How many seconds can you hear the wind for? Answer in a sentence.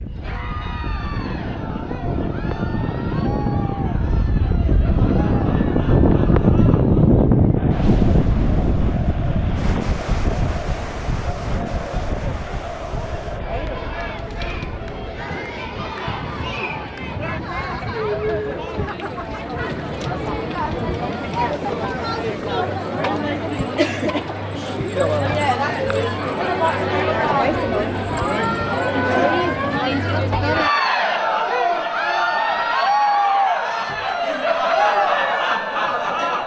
The wind can be heard for 23 seconds in total.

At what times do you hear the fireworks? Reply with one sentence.
You can't hear the fireworks here.